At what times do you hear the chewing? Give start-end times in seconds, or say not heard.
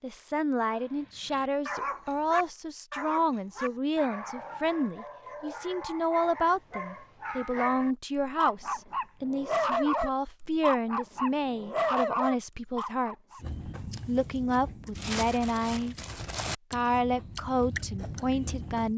13.4-18.9.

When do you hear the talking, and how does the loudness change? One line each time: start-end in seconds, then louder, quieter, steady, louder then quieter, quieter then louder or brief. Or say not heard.
0.0-18.9 steady.